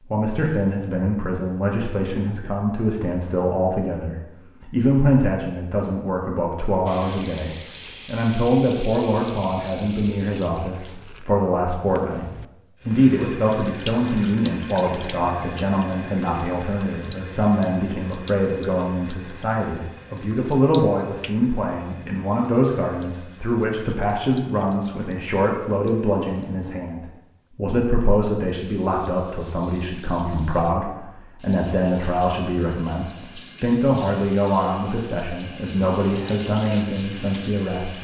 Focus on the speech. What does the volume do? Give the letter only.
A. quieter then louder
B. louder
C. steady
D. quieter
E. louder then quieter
C.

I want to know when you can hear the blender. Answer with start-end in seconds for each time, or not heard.
not heard.